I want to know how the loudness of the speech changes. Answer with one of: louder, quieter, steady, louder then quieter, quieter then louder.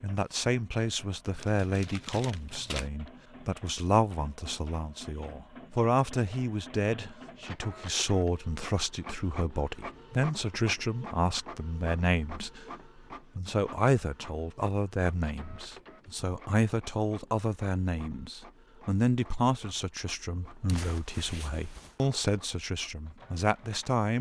steady.